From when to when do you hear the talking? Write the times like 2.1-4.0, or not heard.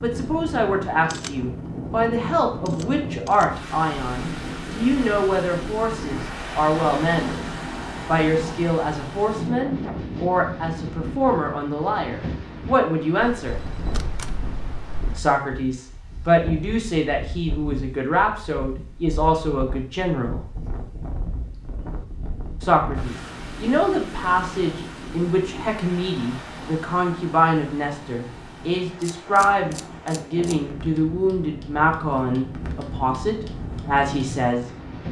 0.0-7.5, 8.1-13.6, 15.2-20.4, 22.6-34.6.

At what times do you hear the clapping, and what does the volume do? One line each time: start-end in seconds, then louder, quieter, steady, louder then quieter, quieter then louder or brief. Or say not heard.
not heard.